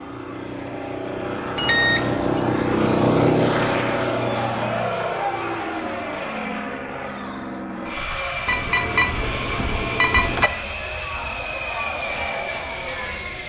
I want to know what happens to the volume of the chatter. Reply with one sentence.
The loudness of the chatter goes down, then up.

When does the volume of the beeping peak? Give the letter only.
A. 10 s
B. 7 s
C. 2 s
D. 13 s
C.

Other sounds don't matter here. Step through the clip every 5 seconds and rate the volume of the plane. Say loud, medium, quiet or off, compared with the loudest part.
loud, medium, medium.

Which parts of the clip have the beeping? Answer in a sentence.
You can hear the beeping from 1.6 to 2.5 s and from 8.4 to 10.5 s.